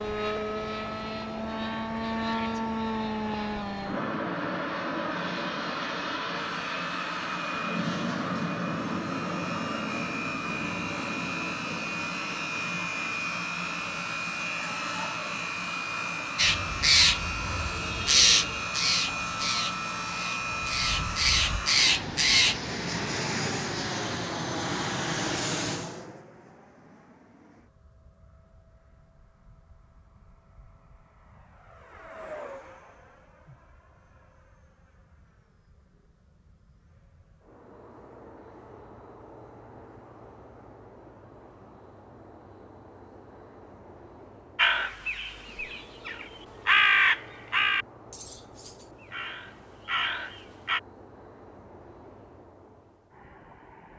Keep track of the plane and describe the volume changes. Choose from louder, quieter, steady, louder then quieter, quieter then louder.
quieter.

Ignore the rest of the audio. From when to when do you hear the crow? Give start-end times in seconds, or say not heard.
16.4-22.6, 44.5-50.8.